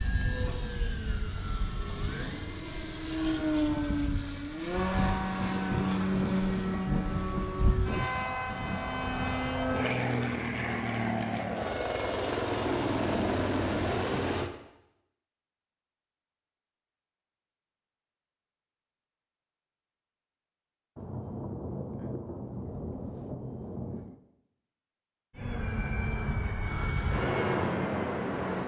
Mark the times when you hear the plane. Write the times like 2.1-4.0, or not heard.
0.0-14.5, 25.3-28.6.